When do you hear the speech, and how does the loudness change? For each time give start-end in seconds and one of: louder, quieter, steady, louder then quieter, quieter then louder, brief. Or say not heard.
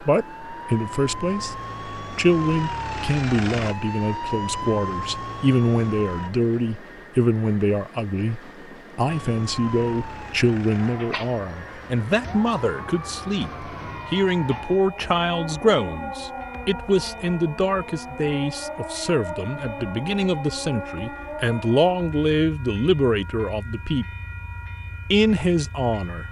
0.1-1.6 brief
2.1-24.1 steady
25.1-26.2 brief.